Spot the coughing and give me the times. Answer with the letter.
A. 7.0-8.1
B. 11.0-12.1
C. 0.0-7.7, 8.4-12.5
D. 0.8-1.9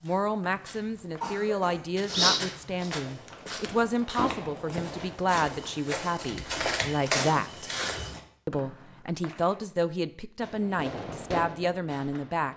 D.